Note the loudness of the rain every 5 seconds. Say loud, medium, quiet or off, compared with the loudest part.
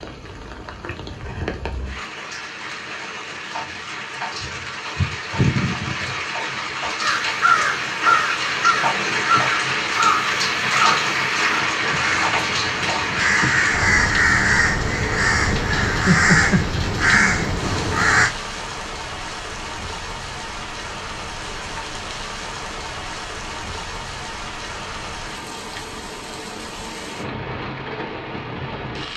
medium, loud, loud, medium, medium, medium.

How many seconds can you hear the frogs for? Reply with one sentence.
The frogs can't be heard in this clip.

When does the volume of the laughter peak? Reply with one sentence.
The loudest moment of the laughter is at 16 seconds.